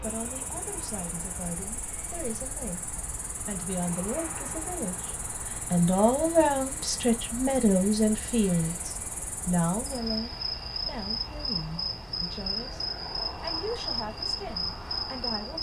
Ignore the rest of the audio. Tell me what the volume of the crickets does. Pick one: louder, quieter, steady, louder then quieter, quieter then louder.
louder.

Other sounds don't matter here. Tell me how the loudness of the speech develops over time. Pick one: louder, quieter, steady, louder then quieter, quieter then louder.
louder then quieter.